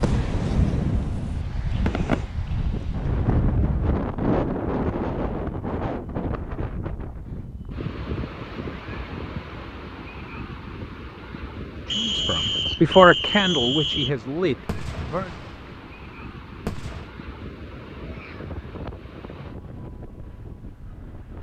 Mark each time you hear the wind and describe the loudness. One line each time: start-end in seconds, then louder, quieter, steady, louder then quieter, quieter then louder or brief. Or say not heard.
0.0-21.3 quieter.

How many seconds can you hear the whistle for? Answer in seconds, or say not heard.
2 s.